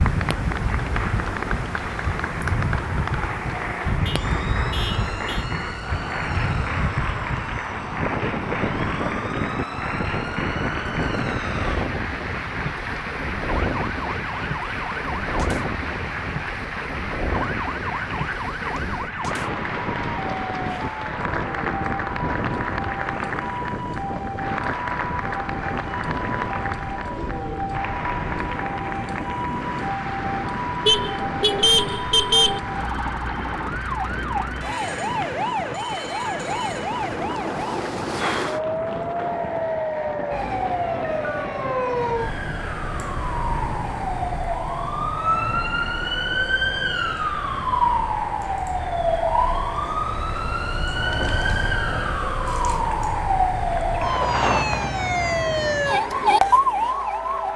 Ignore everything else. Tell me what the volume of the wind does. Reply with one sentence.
The volume of the wind goes down.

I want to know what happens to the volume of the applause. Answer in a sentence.
The loudness of the applause goes down.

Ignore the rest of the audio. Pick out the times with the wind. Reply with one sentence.
You can hear the wind from 0.0 to 48.1 s.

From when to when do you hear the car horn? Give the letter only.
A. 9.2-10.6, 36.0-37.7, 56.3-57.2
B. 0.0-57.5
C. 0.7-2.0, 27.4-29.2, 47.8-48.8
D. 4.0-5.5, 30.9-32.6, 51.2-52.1
D.